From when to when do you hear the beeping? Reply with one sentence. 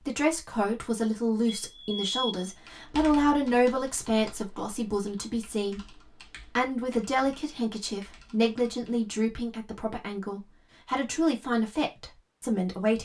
You can hear the beeping from 1.4 to 2.5 s.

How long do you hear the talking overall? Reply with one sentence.
The talking can be heard for 13 seconds in total.